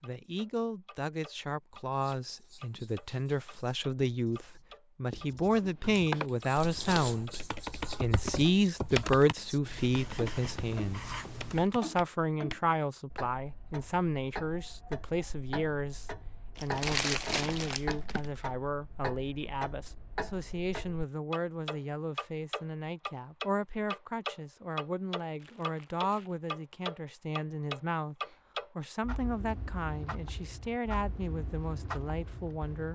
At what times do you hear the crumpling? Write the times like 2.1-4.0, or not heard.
6.5-7.2, 16.6-18.3, 25.4-26.4.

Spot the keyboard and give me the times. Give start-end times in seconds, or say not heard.
5.6-12.8.